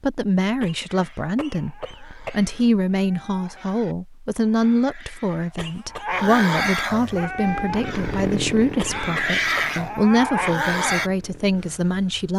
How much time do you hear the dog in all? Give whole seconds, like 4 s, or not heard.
10 s.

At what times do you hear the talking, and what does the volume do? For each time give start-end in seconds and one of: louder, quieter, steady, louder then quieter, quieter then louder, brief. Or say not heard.
0.0-12.3 steady.